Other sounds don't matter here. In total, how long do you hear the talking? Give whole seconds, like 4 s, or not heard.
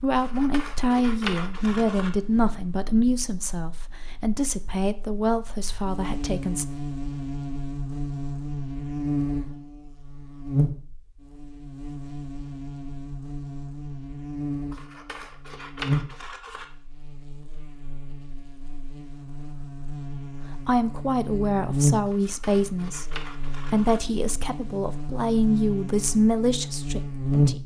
14 s.